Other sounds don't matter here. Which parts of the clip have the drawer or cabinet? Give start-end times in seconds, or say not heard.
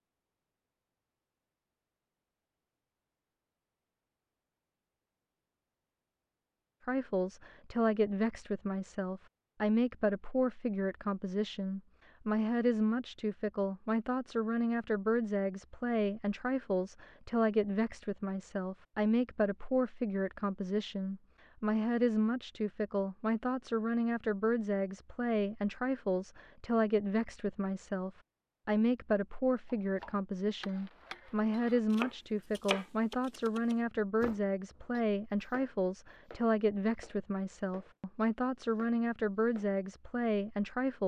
not heard.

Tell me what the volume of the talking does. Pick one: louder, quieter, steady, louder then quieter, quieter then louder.
steady.